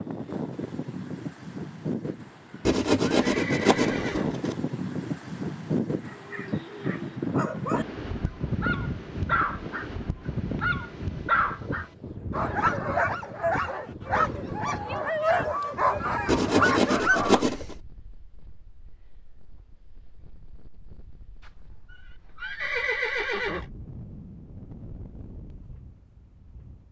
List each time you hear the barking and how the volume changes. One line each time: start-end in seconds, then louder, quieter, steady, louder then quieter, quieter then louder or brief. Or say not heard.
6.0-17.4 louder.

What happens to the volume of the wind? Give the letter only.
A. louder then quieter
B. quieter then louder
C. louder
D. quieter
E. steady
D.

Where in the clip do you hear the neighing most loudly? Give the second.
23 s.